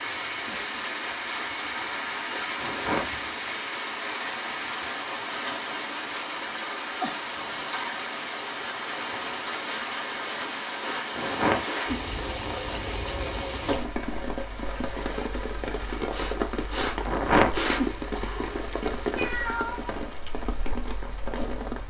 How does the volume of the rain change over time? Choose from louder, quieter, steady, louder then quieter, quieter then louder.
steady.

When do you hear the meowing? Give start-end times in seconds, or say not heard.
19.1-20.0.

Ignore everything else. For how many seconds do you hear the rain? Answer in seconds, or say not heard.
22 s.